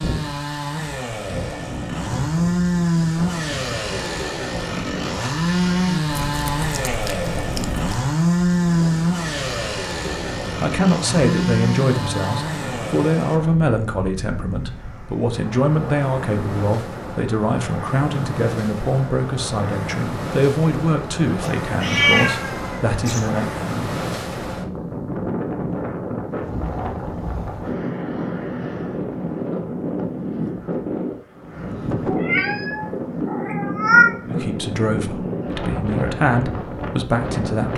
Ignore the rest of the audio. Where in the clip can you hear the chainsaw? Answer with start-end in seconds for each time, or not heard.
0.0-13.4.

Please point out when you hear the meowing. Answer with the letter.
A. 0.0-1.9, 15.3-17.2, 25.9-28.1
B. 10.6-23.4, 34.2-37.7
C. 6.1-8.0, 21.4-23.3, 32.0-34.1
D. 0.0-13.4
C.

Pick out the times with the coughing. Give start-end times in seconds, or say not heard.
not heard.